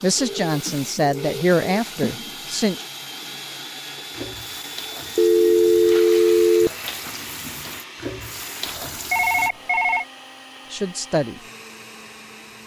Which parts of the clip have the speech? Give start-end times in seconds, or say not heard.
0.0-2.9, 10.7-11.4.